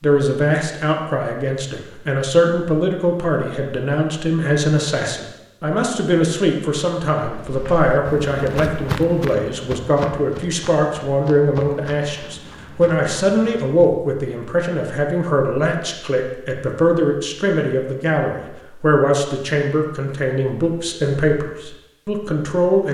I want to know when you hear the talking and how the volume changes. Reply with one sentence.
You can hear the talking from 0.0 to 22.9 s, at a steady volume.